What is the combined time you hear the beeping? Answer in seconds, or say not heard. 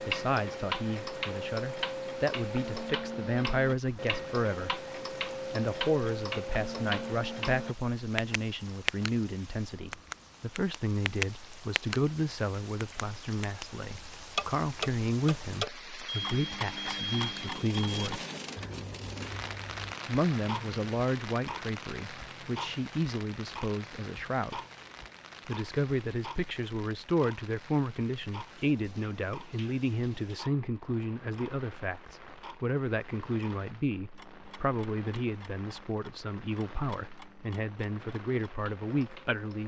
2 s.